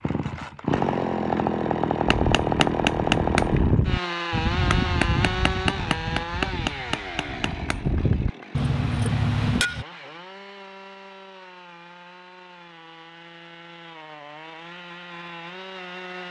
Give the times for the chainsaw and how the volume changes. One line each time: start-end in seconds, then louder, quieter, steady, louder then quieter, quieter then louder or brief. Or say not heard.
0.0-16.2 quieter.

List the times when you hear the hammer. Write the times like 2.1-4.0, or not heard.
2.0-9.8.